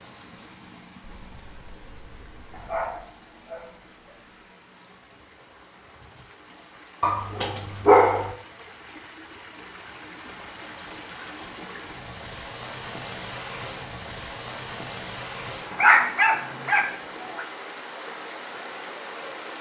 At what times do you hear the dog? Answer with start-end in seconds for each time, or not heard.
2.5-4.1, 7.0-8.3, 15.7-17.4.